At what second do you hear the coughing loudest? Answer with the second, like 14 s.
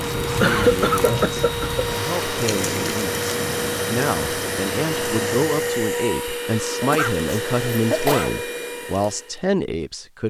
1 s.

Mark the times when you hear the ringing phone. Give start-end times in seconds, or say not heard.
not heard.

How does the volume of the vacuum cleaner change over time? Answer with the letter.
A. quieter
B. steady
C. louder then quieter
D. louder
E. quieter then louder
B.